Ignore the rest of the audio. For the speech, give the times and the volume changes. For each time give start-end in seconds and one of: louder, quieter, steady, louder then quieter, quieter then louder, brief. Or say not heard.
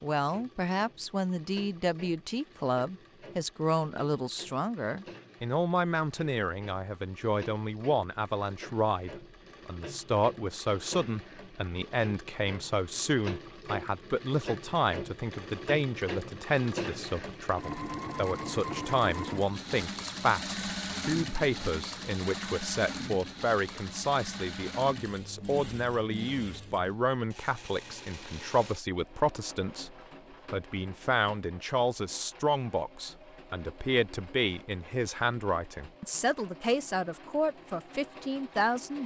0.0-39.0 steady.